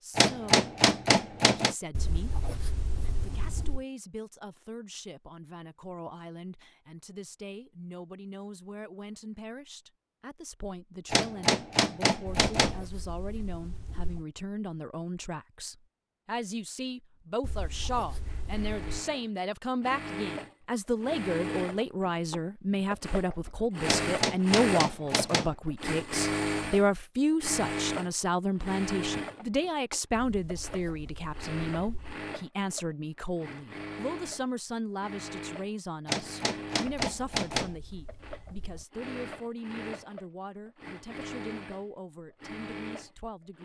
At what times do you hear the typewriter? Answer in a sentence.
The typewriter can be heard from 0.1 to 1.8 s, from 11.1 to 12.8 s, from 23.9 to 25.6 s and from 36.0 to 37.8 s.